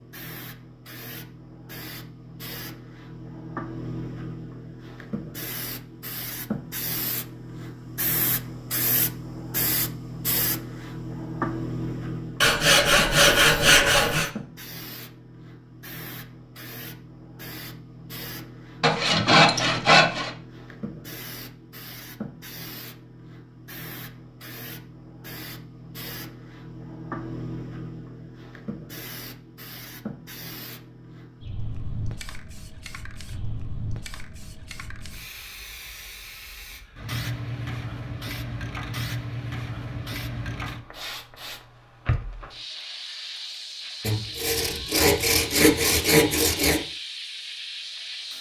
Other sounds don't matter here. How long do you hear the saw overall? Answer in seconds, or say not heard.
6 s.